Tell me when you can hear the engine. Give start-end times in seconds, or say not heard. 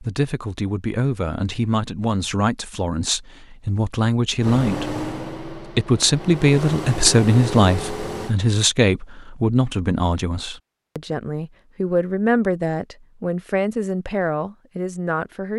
4.4-8.3.